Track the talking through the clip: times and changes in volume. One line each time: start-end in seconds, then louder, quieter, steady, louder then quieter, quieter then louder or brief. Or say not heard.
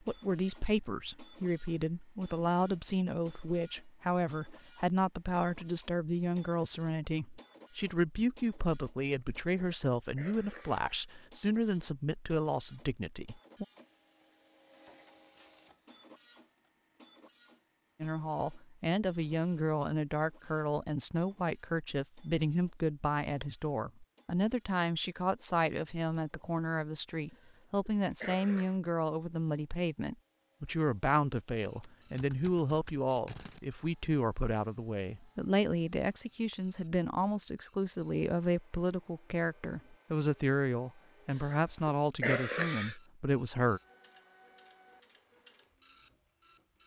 0.1-13.7 steady
18.0-43.8 steady.